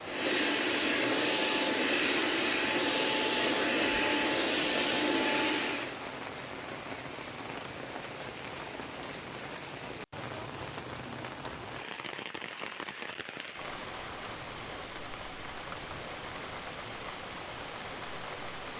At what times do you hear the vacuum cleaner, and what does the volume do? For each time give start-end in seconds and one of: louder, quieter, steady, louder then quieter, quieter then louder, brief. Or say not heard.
0.0-6.0 steady.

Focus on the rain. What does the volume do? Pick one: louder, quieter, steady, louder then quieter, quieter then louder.
steady.